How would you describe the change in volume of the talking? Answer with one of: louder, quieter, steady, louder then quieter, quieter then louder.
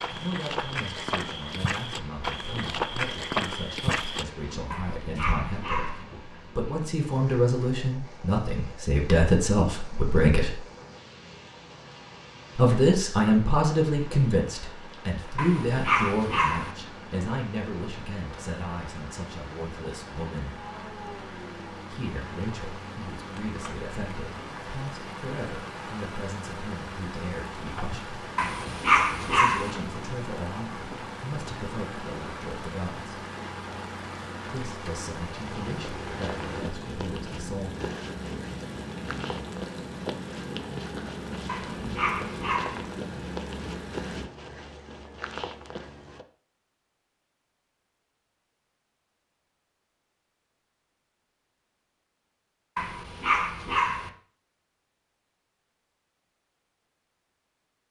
louder then quieter.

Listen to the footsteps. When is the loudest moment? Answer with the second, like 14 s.
3 s.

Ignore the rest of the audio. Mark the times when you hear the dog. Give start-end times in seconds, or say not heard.
4.7-6.0, 15.3-16.7, 28.4-29.7, 41.5-42.9, 52.8-54.1.